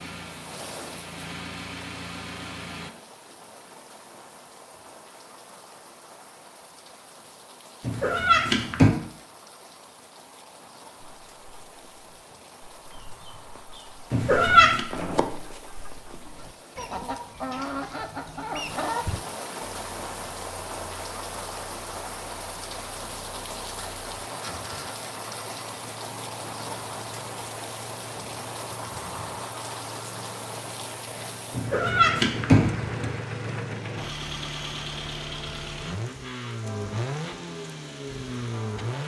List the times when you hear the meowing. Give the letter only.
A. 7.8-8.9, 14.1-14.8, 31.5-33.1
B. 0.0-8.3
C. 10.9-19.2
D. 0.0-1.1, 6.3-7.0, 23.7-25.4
A.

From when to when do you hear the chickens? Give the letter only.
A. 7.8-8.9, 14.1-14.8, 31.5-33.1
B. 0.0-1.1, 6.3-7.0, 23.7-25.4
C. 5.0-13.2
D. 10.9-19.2
D.